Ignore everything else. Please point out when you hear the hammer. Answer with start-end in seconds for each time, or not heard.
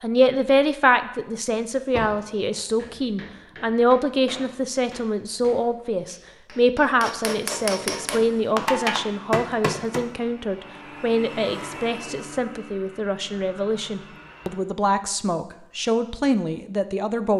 2.8-10.1.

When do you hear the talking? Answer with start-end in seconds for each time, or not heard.
0.0-17.3.